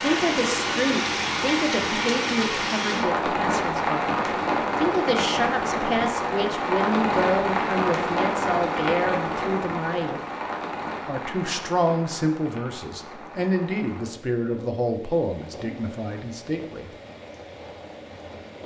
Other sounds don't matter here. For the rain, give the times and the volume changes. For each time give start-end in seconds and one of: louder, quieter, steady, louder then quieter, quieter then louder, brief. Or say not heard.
0.0-18.6 quieter.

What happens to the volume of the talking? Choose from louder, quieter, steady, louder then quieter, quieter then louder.
steady.